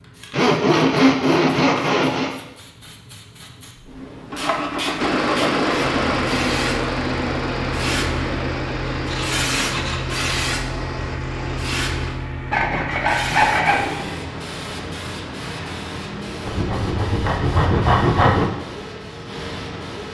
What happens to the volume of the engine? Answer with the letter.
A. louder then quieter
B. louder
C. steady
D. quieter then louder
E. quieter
E.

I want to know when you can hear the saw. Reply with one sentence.
The saw can be heard from 0.3 to 2.3 s, from 4.3 to 6.2 s, from 8.9 to 10.3 s, from 12.5 to 14.1 s and from 16.4 to 18.4 s.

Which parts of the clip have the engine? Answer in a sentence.
The engine can be heard from 5.0 to 12.2 s.